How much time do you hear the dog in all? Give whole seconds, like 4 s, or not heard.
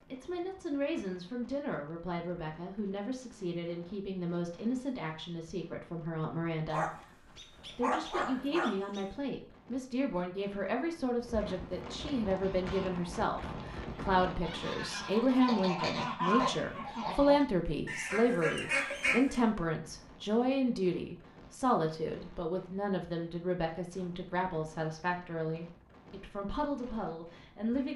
2 s.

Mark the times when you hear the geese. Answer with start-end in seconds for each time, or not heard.
12.2-19.4.